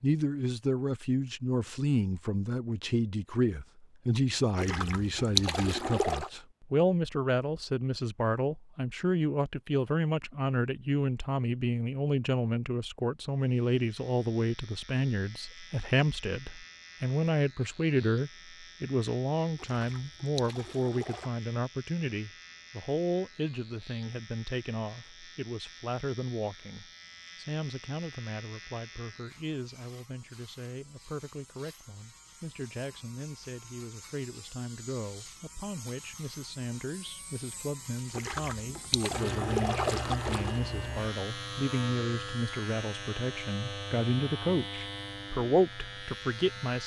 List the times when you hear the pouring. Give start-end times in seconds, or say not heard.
4.5-6.3, 19.6-21.3, 38.1-40.6.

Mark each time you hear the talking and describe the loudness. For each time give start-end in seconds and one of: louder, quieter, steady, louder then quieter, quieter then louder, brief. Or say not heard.
0.0-46.8 quieter then louder.